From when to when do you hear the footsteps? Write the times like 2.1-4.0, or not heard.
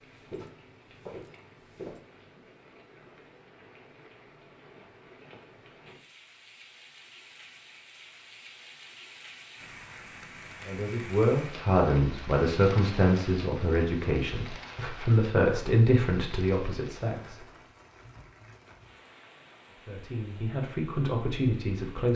0.1-2.0.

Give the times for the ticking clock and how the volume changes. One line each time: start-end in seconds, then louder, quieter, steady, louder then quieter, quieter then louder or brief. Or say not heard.
not heard.